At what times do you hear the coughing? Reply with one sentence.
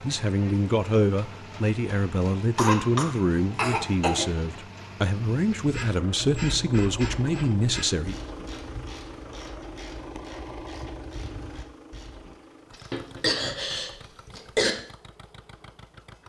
You can hear the coughing from 2.4 to 4.3 s and from 12.7 to 14.8 s.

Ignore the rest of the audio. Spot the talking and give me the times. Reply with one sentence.
You can hear the talking from 0.0 to 8.2 s.